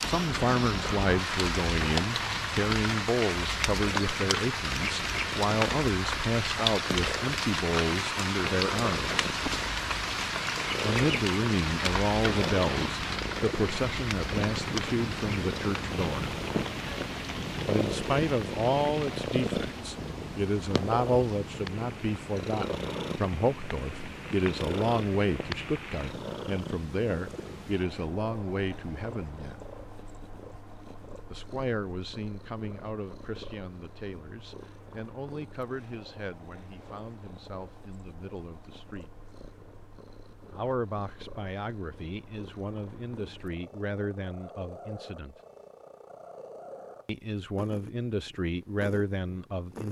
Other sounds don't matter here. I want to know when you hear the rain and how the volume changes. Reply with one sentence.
The rain can be heard from 0.0 to 26.1 s, getting quieter.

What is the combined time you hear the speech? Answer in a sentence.
You can hear the speech for 42 seconds altogether.